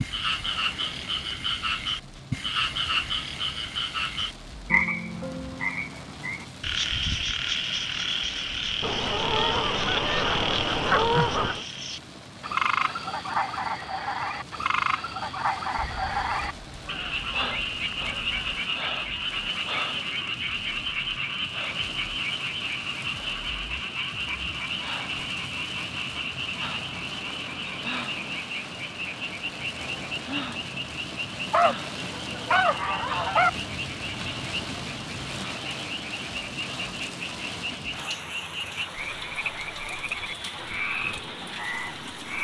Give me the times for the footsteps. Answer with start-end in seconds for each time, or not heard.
not heard.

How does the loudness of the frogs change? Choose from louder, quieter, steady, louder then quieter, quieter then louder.
quieter.